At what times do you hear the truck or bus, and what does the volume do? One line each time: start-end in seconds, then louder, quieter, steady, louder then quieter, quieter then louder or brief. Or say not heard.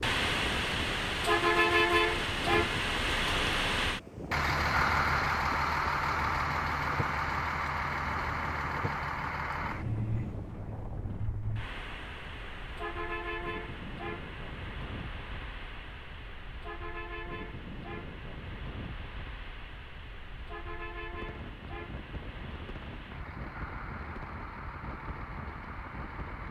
0.0-26.4 quieter.